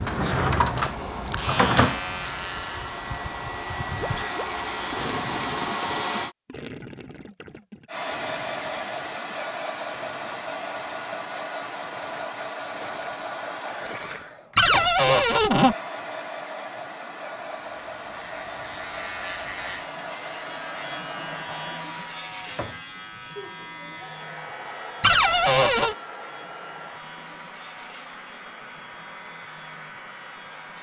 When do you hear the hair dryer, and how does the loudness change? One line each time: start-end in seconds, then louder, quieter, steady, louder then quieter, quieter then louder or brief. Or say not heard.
0.0-6.3 louder
7.8-30.7 quieter.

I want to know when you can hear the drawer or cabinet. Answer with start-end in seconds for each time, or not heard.
0.1-1.9, 14.6-15.8, 25.0-25.9.